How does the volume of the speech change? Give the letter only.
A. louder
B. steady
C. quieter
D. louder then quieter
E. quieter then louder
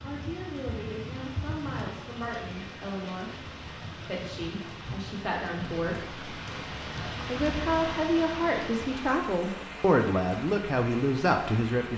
A.